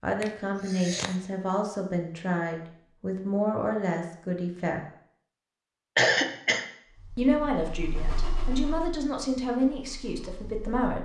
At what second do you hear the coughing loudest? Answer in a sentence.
The volume of the coughing peaks at 6 seconds.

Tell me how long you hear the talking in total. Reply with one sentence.
The talking can be heard for 9 seconds in total.